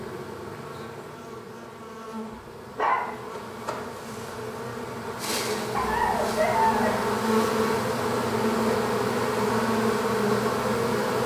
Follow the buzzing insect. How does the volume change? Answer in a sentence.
The loudness of the buzzing insect goes up.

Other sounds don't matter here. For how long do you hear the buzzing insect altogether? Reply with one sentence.
You can hear the buzzing insect for 11 seconds altogether.